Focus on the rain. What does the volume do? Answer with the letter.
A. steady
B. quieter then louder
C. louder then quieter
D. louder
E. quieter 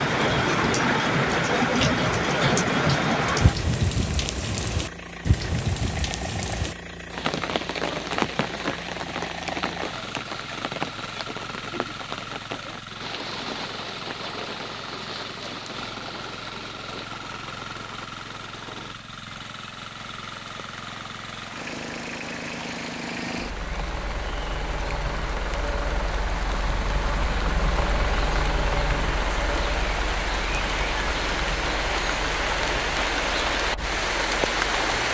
B.